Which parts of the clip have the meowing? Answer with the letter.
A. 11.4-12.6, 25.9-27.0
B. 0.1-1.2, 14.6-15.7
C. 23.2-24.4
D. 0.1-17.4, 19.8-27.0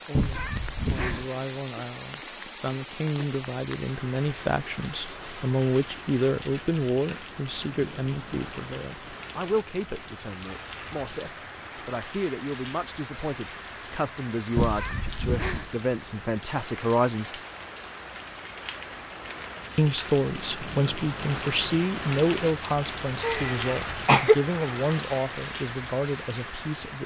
B.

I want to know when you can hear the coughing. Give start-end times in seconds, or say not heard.
23.2-24.4.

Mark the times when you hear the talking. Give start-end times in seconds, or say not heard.
0.1-17.4, 19.8-27.0.